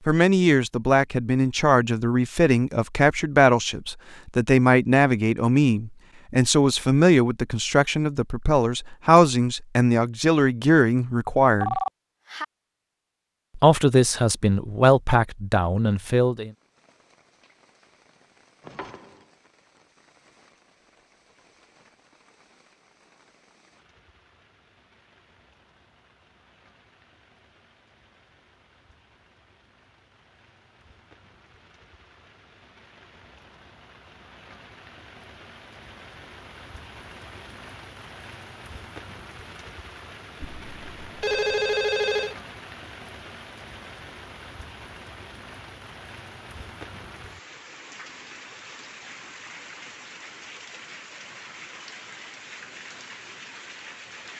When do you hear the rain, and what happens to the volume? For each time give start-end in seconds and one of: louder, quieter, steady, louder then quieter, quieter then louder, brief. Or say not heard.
16.4-54.3 louder.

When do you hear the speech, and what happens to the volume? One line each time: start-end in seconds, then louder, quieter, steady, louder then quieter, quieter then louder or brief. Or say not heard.
0.1-11.8 steady
13.6-16.5 brief.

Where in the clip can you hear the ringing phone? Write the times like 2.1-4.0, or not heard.
11.4-12.4, 18.6-19.2, 40.4-42.4.